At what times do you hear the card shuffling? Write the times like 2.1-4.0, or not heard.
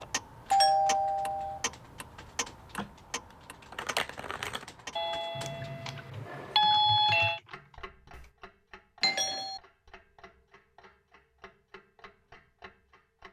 2.8-4.7.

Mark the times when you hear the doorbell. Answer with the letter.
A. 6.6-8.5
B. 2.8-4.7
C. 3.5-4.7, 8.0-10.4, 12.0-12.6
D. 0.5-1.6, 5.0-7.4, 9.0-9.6
D.